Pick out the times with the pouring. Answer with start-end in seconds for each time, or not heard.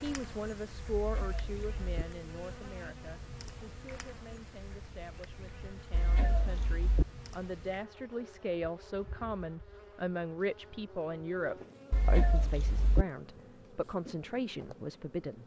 not heard.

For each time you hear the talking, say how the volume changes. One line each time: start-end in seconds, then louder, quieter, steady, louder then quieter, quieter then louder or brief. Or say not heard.
0.0-15.4 quieter then louder.